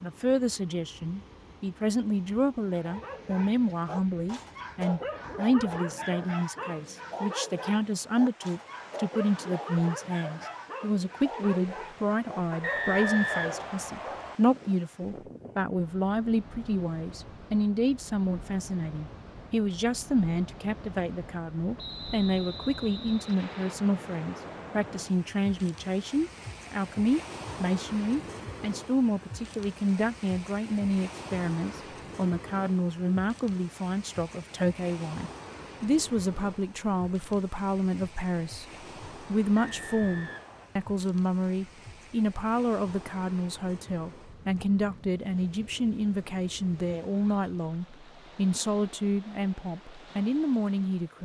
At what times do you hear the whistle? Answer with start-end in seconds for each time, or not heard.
12.6-14.3, 21.8-23.8, 39.5-40.7.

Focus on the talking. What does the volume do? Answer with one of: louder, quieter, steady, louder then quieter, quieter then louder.
steady.